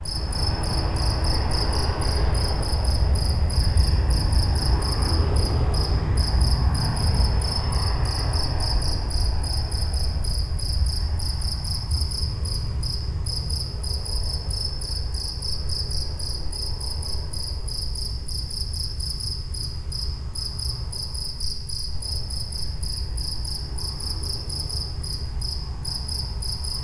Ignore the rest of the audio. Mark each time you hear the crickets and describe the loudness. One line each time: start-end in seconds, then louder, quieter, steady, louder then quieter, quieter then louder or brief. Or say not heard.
0.0-26.8 steady.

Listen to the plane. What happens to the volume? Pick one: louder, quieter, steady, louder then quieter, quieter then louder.
quieter.